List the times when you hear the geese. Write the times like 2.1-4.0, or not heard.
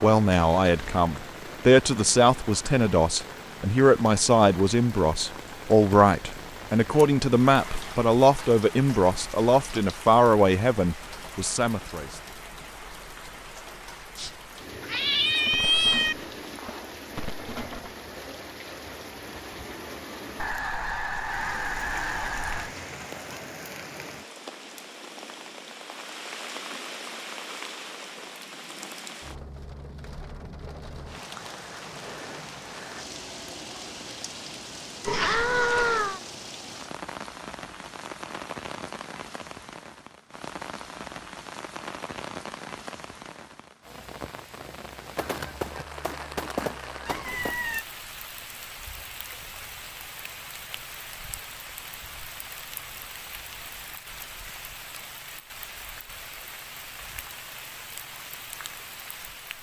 15.4-17.9, 20.4-22.7, 45.1-47.5.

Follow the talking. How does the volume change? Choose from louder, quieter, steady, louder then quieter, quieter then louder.
steady.